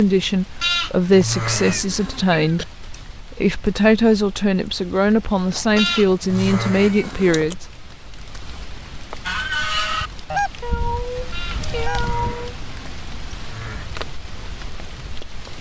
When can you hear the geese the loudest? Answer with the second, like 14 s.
10 s.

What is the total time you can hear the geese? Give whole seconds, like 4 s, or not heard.
3 s.